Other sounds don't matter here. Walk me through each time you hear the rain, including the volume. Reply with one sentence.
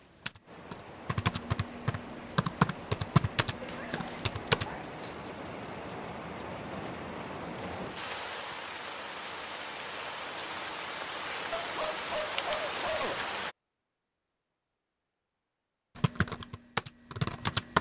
You can hear the rain from 0.0 to 13.6 s, getting louder.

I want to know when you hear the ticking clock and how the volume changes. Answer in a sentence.
The ticking clock can't be heard in this clip.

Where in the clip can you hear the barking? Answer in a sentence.
You can hear the barking from 3.6 to 5.3 s and from 11.5 to 13.2 s.